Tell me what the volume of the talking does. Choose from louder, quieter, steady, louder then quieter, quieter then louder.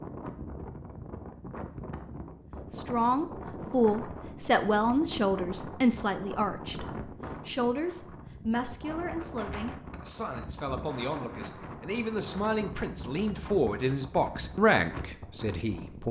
quieter then louder.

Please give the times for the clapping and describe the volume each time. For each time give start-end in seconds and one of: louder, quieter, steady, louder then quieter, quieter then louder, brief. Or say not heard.
not heard.